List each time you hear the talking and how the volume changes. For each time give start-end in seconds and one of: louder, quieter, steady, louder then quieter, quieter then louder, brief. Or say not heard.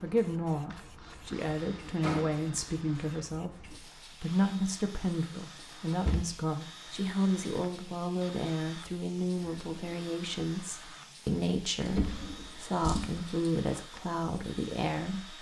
0.0-15.3 steady.